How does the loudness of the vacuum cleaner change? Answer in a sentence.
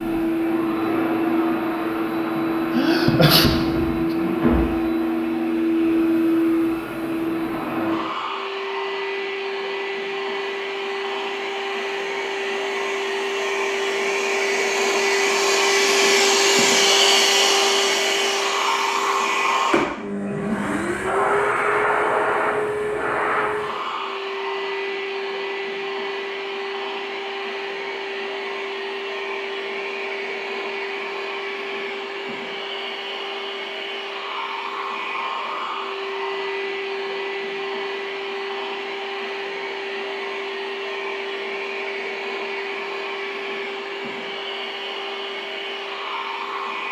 The loudness of the vacuum cleaner goes down.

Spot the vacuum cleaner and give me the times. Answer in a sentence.
The vacuum cleaner can be heard from 0.0 to 46.8 s.